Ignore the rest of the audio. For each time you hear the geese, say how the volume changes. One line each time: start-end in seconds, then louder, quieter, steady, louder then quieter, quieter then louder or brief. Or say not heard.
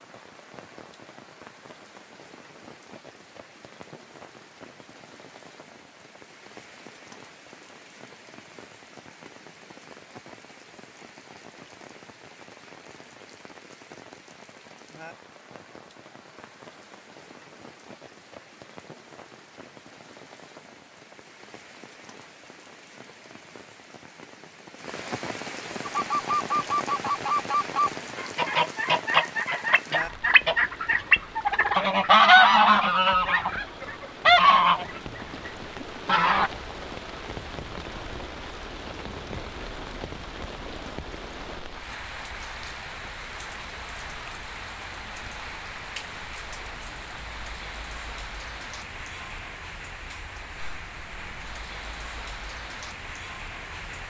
25.9-36.5 louder.